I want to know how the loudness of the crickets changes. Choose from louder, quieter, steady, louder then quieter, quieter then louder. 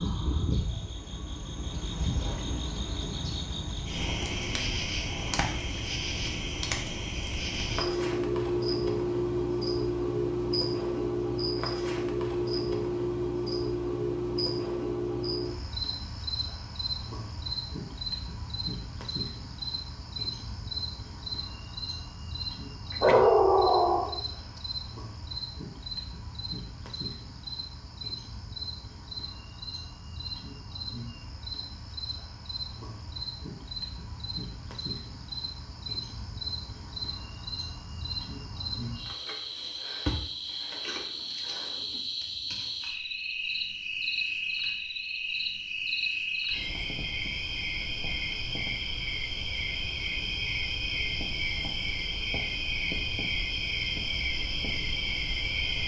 quieter then louder.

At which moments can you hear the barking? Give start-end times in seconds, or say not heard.
23.0-24.2.